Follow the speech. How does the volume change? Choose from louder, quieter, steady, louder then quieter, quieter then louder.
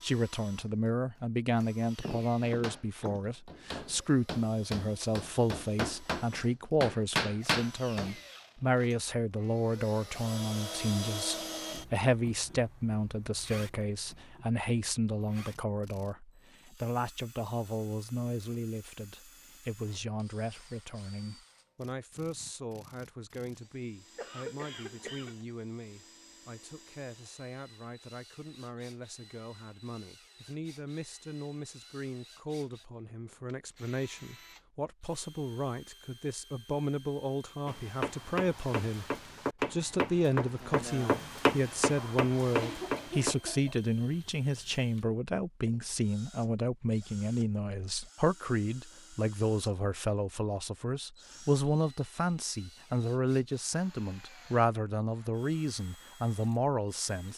quieter then louder.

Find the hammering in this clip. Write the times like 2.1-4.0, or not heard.
2.4-8.2, 37.6-43.4.